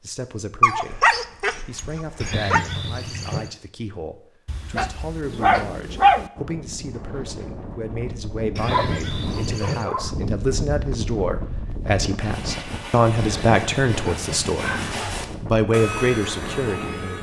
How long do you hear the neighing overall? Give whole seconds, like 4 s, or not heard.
5 s.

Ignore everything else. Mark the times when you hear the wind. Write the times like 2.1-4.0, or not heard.
6.3-17.1.